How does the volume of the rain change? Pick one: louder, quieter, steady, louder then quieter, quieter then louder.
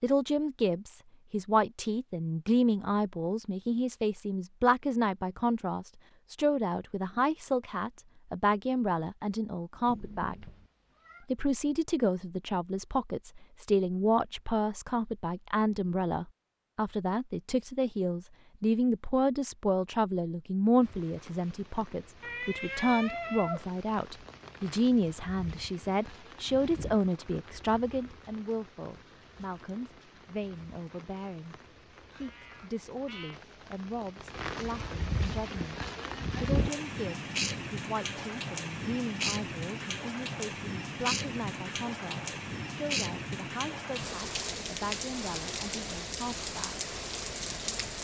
louder.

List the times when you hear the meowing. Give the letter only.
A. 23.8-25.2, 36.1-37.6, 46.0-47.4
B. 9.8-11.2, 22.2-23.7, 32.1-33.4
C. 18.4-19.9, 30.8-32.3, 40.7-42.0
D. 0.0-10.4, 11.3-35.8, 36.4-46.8
B.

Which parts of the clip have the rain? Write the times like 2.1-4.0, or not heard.
20.8-47.9.